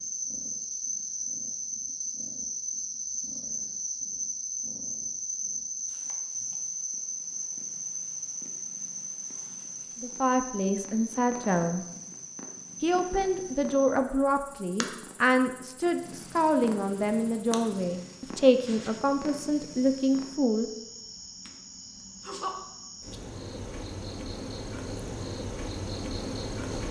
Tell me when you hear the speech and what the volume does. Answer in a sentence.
You can hear the speech briefly from 10.0 to 11.8 s; and from 12.8 to 20.6 s, at a steady volume.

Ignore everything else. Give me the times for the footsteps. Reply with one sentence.
The footsteps can't be heard in this clip.